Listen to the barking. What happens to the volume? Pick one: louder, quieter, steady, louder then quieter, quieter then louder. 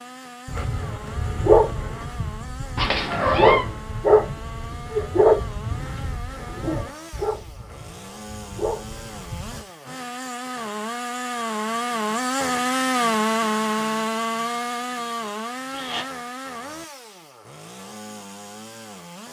quieter.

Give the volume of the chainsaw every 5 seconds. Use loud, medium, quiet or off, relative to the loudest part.
quiet, quiet, loud, medium.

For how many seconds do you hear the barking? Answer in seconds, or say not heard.
9 s.